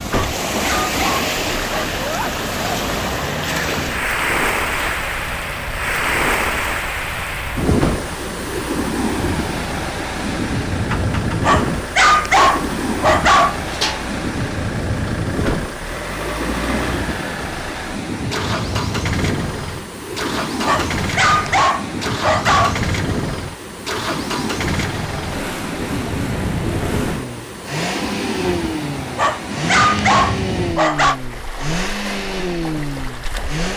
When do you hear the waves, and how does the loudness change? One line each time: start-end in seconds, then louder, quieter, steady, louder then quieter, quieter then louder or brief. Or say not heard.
0.0-33.7 quieter.